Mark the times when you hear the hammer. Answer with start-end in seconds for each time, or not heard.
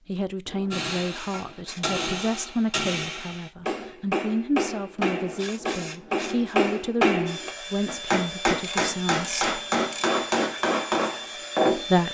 0.7-11.8.